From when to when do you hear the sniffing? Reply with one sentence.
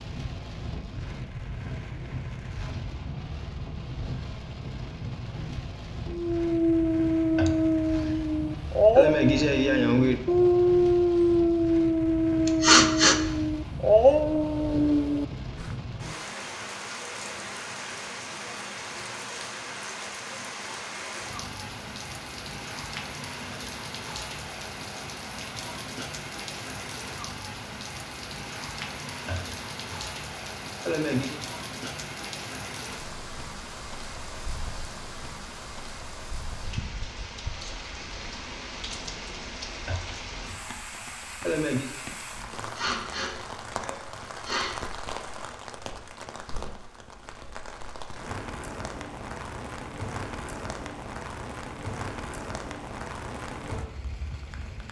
You can hear the sniffing from 12.4 to 13.2 s and from 42.6 to 44.8 s.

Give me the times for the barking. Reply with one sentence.
The barking can be heard from 6.1 to 15.7 s.